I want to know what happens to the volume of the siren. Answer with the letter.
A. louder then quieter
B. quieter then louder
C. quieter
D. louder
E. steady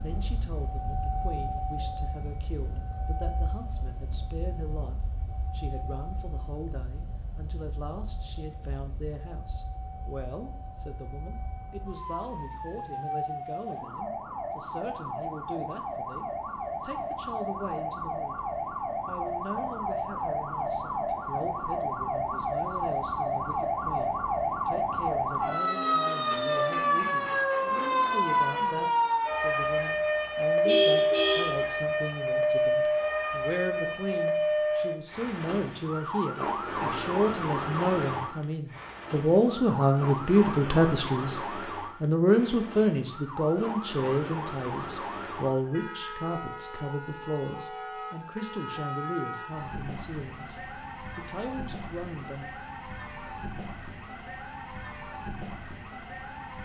A.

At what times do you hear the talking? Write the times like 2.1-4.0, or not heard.
0.0-18.4, 19.1-41.4, 42.0-52.5.